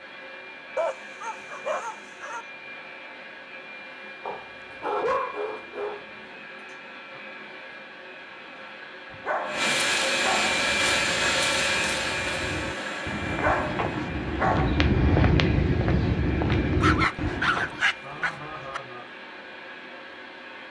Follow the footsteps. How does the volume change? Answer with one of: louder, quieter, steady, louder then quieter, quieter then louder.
louder.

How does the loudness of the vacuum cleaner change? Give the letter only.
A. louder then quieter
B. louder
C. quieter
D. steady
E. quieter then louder
A.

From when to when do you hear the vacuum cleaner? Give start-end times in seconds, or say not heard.
0.0-20.6.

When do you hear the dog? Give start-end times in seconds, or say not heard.
0.8-2.5, 4.2-6.4, 9.1-10.6, 13.2-14.8, 16.8-18.8.